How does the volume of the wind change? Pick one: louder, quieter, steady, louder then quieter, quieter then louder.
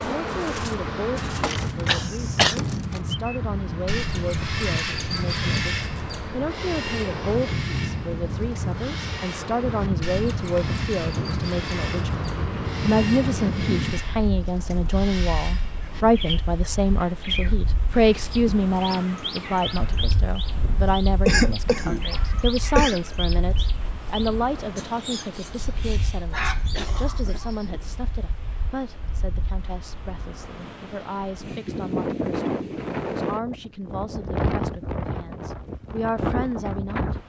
quieter then louder.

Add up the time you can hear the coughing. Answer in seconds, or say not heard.
4 s.